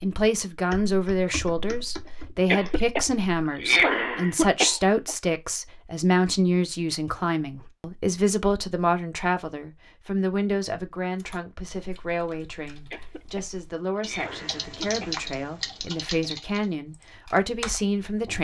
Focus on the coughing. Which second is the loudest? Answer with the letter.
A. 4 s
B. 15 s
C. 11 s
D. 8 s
A.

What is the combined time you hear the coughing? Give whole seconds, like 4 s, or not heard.
5 s.